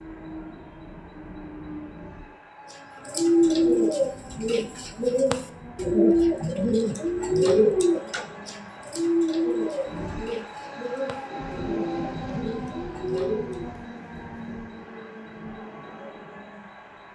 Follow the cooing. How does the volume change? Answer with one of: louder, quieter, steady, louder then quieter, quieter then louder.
quieter.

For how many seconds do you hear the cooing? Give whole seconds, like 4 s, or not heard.
11 s.